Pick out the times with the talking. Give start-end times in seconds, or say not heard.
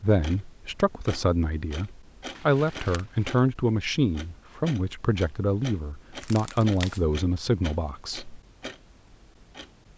0.0-8.4.